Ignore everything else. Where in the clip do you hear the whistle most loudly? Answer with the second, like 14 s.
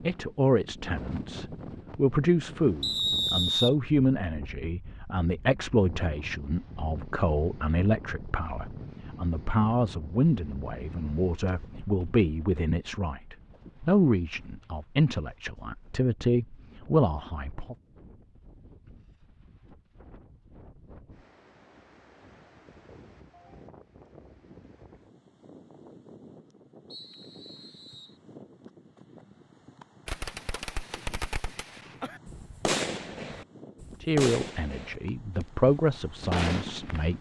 3 s.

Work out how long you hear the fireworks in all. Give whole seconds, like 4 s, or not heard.
7 s.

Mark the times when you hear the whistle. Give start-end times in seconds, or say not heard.
2.8-3.8, 26.9-28.2.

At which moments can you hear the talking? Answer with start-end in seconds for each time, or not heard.
0.0-17.8, 34.0-37.1.